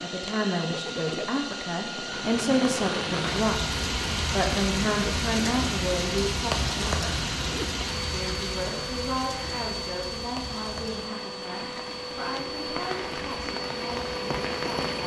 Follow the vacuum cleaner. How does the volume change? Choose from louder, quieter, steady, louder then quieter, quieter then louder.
steady.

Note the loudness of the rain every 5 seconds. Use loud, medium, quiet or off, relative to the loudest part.
loud, loud, medium.